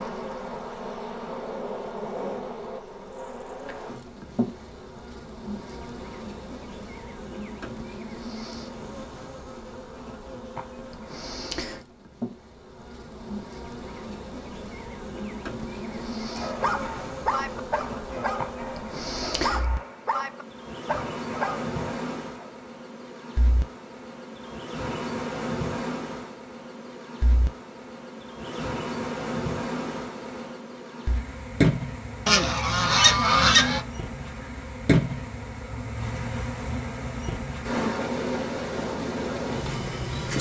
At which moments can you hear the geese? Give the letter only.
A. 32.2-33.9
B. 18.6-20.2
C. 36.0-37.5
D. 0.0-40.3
A.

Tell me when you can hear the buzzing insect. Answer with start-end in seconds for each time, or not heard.
0.0-40.3.